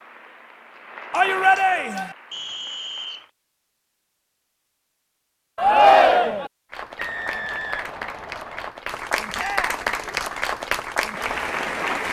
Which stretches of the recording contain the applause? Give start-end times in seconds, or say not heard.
0.0-3.3, 6.7-12.0.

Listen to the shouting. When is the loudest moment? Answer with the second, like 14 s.
6 s.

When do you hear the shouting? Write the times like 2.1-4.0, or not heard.
1.1-2.1, 5.5-6.5, 9.3-9.9.